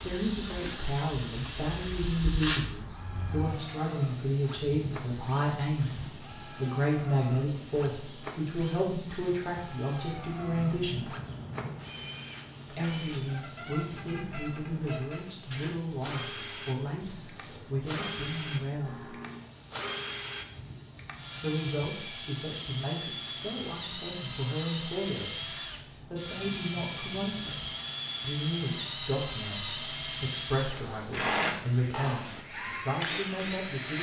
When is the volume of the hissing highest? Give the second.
2 s.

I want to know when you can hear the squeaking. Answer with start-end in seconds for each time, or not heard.
13.1-15.3, 30.7-32.4.